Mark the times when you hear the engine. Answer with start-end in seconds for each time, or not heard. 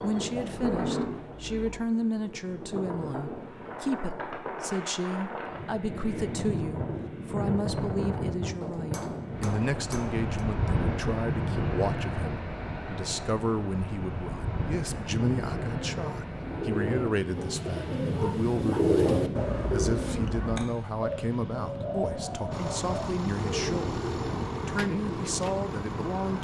22.5-26.3.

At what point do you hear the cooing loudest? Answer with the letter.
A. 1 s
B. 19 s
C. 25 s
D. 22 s
B.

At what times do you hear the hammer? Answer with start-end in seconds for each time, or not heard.
8.6-10.3.